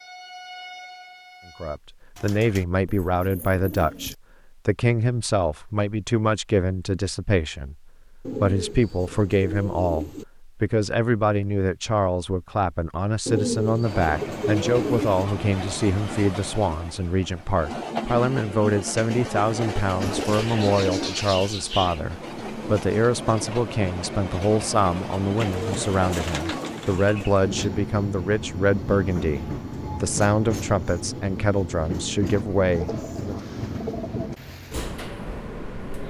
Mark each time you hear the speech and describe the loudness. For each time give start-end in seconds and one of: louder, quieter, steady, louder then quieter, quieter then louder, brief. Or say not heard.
1.6-33.5 steady.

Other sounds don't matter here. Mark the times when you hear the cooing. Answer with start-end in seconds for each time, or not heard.
2.1-4.2, 8.2-10.2, 13.2-15.2, 20.0-22.0, 25.4-27.4, 32.8-34.4.